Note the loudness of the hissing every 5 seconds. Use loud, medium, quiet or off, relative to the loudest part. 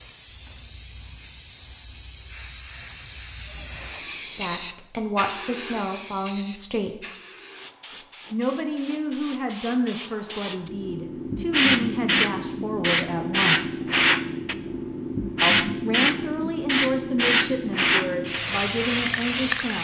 quiet, quiet, loud, loud.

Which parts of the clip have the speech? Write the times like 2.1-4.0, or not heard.
4.3-7.0, 8.3-13.9, 15.4-19.8.